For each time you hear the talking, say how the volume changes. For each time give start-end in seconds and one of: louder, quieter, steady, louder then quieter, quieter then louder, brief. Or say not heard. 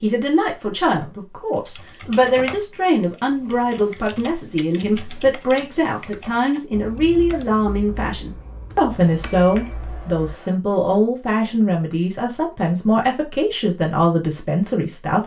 0.0-15.2 steady.